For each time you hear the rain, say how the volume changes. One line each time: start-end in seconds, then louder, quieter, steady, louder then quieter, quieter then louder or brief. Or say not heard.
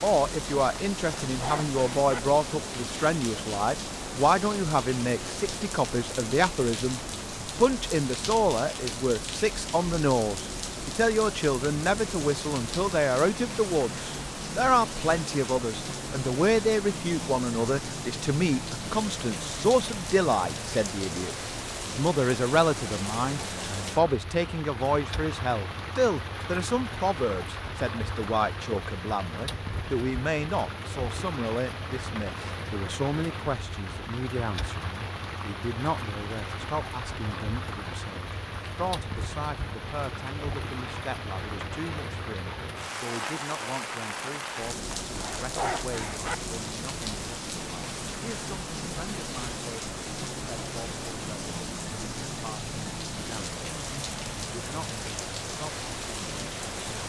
0.0-57.0 steady.